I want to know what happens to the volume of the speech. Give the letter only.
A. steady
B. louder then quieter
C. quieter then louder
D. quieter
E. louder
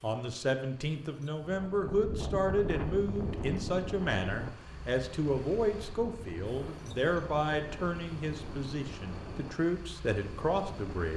A.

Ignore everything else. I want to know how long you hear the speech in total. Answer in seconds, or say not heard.
11 s.